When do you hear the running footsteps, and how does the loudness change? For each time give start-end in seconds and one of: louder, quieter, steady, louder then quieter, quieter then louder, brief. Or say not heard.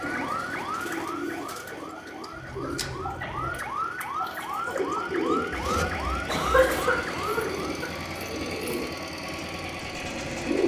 not heard.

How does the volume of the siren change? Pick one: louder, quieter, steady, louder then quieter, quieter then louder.
quieter then louder.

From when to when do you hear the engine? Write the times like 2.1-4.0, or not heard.
0.0-10.6.